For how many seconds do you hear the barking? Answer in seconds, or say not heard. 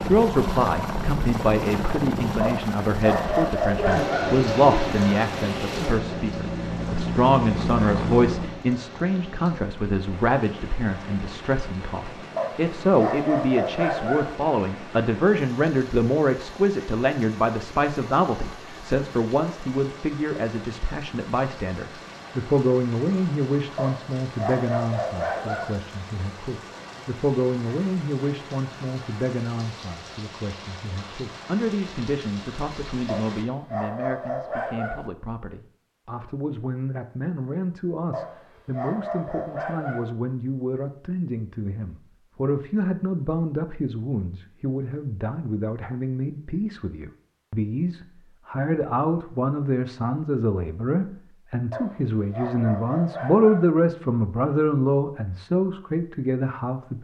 12 s.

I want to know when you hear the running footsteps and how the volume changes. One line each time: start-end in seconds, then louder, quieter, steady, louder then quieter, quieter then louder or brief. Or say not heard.
not heard.